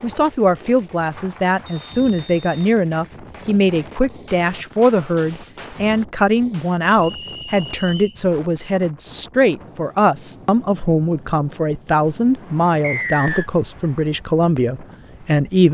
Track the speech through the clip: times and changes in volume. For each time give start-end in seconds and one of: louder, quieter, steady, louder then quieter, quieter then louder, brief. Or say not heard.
0.0-15.6 steady.